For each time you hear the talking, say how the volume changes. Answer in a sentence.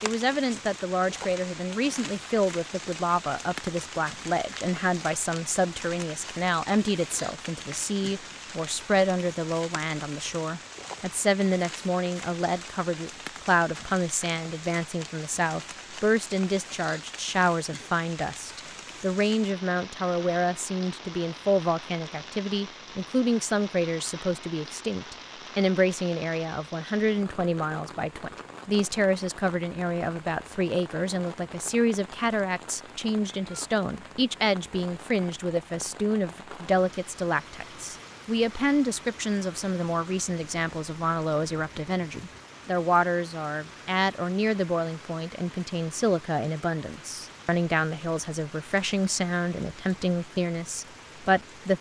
The talking can be heard from 0.0 to 51.7 s, at a steady volume.